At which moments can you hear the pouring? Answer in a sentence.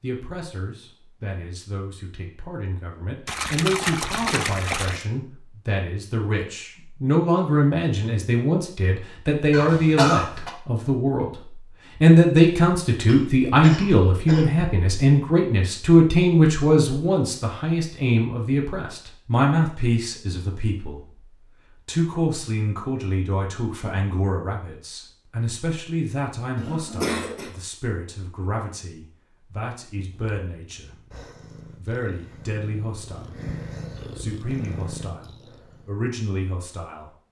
You can hear the pouring from 3.2 to 5.0 s.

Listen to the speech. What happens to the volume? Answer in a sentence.
The loudness of the speech goes up, then down.